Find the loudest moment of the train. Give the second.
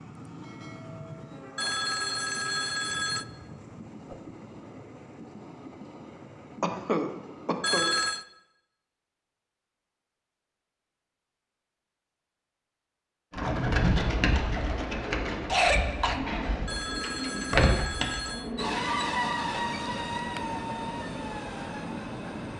19 s.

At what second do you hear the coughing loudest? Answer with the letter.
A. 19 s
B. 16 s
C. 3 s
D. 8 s
B.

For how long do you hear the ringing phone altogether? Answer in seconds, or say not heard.
4 s.